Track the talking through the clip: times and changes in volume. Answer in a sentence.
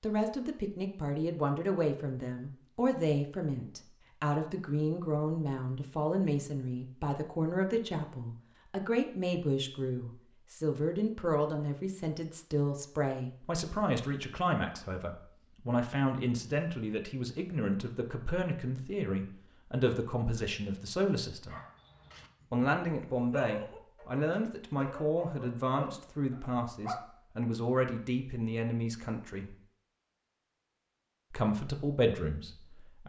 You can hear the talking from 0.0 to 21.6 s, at a steady volume; from 22.5 to 29.6 s, at a steady volume; and briefly from 31.3 to 33.0 s.